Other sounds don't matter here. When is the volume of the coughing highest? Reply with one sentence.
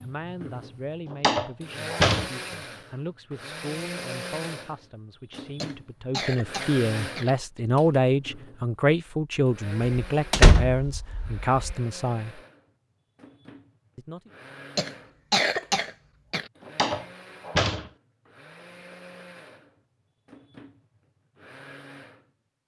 The loudest moment of the coughing is at 15 seconds.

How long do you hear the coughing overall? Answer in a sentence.
You can hear the coughing for 4 seconds altogether.